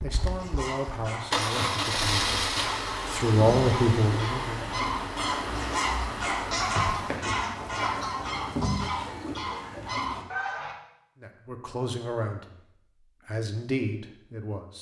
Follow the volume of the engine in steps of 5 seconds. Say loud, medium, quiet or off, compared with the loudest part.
loud, medium, off.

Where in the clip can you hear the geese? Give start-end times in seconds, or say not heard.
0.1-10.8.